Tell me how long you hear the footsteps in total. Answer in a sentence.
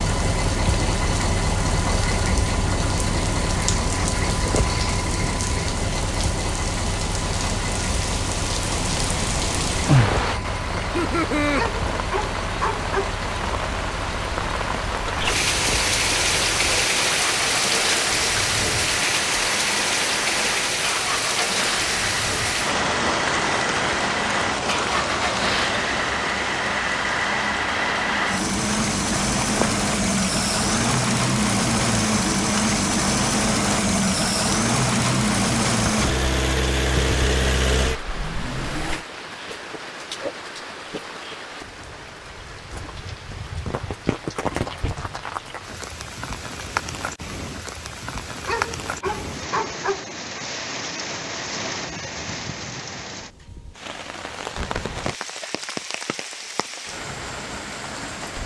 The footsteps can't be heard in this clip.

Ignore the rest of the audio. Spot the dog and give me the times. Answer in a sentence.
You can hear the dog from 11.6 to 13.2 s and from 48.5 to 50.0 s.